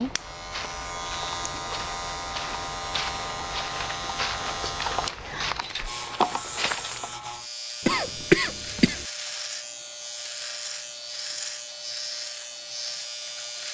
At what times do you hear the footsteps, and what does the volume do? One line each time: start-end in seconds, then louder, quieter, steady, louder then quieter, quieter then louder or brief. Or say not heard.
0.0-7.3 louder.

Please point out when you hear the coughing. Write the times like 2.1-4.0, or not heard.
7.8-9.1.